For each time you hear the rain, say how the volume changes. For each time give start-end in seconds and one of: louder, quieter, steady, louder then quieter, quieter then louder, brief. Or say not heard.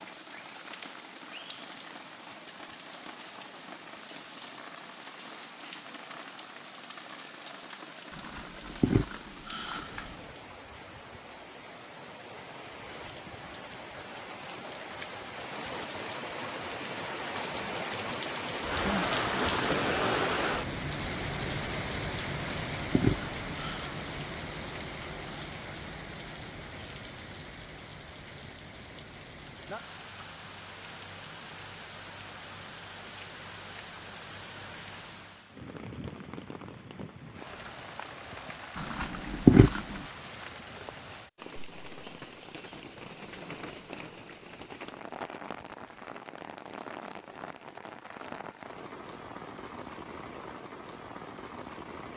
0.0-52.1 louder then quieter.